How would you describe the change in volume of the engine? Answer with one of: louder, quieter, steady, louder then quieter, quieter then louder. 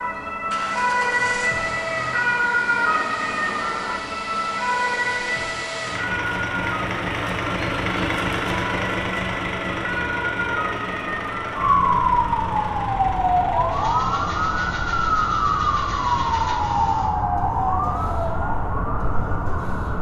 louder then quieter.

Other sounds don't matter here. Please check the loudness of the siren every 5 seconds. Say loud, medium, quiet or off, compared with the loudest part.
loud, medium, loud, loud.